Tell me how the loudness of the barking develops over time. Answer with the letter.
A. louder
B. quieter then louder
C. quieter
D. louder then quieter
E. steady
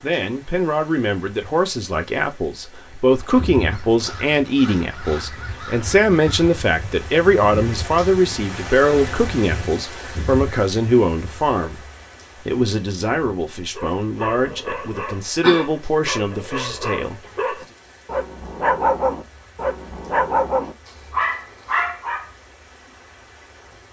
A.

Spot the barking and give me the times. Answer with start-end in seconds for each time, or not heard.
13.8-22.3.